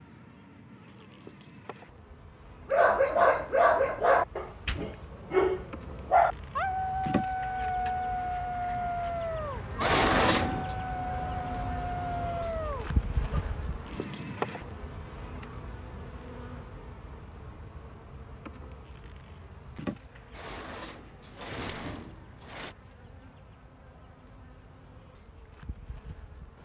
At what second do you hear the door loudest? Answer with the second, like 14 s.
10 s.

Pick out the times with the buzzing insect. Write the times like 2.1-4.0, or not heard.
0.0-26.5.